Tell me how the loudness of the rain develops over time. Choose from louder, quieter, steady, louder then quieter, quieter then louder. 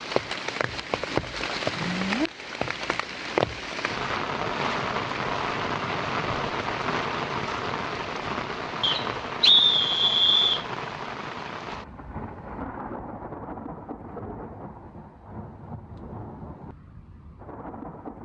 quieter.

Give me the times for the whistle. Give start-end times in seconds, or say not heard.
8.8-10.7.